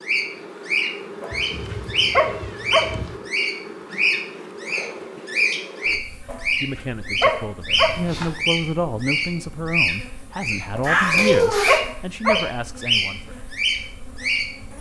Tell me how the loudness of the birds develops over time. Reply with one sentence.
The loudness of the birds stays about the same.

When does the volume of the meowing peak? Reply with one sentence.
The volume of the meowing peaks at 11 seconds.